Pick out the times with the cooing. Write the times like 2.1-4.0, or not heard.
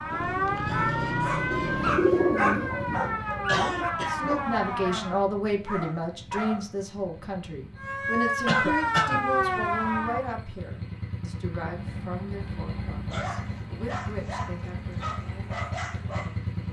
1.5-3.1.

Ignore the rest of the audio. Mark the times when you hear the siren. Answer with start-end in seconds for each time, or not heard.
0.0-5.2, 7.8-10.2.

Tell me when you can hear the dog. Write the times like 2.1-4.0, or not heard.
0.7-6.7, 13.1-16.4.